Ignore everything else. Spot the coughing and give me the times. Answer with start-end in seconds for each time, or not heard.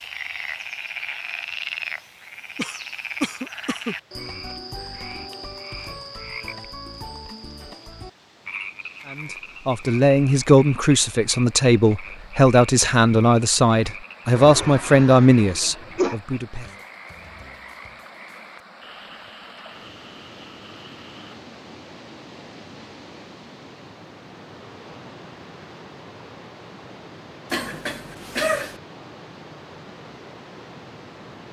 2.5-4.0, 14.3-16.1, 27.5-28.8.